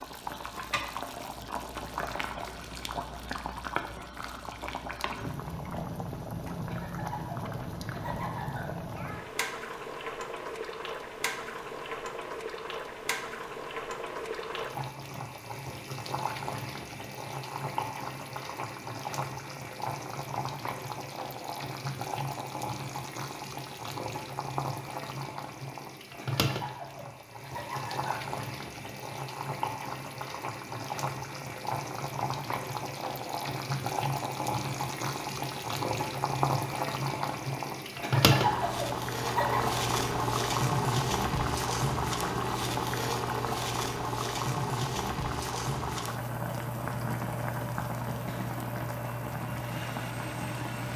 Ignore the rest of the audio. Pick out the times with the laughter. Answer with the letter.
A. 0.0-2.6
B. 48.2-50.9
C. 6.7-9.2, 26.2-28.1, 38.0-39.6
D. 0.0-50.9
C.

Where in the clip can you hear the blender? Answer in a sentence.
You can hear the blender from 48.2 to 50.9 s.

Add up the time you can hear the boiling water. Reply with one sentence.
You can hear the boiling water for 51 seconds altogether.